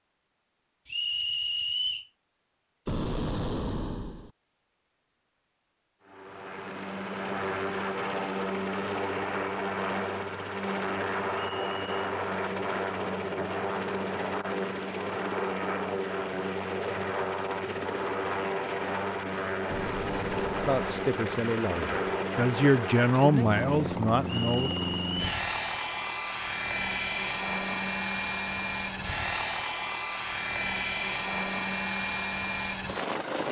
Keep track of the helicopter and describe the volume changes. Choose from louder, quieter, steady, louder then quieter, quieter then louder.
steady.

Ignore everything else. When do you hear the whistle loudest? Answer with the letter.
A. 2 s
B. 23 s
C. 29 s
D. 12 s
A.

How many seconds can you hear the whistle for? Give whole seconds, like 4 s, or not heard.
3 s.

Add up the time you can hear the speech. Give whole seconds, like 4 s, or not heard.
4 s.